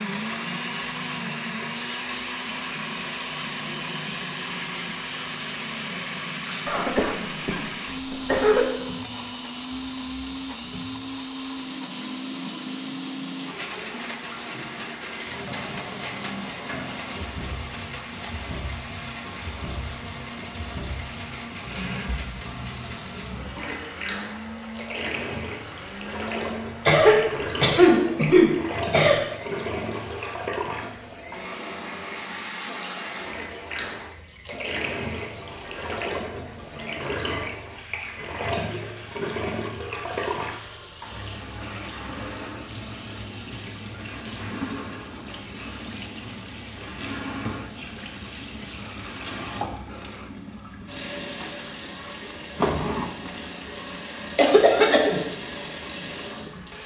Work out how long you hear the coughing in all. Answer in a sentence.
The coughing can be heard for 5 seconds in total.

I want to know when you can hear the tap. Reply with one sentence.
You can hear the tap from 0.0 to 56.8 s.